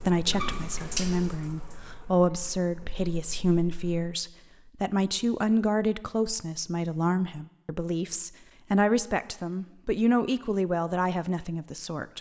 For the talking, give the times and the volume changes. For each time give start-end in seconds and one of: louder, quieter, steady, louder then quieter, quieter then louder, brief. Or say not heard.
0.0-12.1 steady.